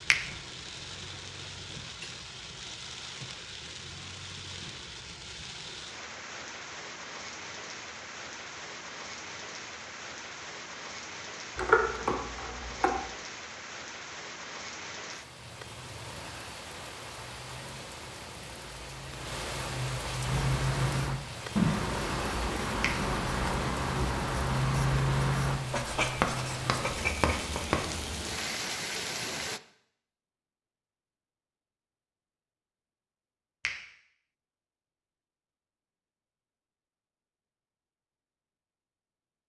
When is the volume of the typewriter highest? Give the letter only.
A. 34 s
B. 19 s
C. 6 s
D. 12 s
D.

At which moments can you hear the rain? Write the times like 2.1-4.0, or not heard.
0.0-29.6.